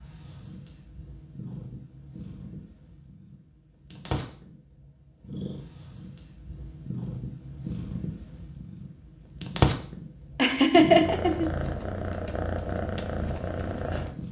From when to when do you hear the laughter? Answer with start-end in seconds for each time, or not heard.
10.3-11.5.